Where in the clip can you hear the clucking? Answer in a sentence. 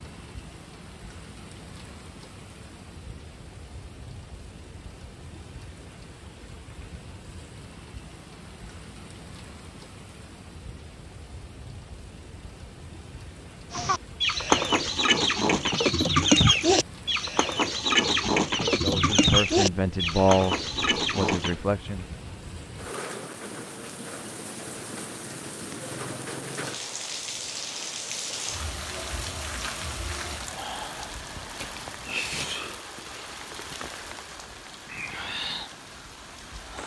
You can hear the clucking from 13.7 to 21.6 s.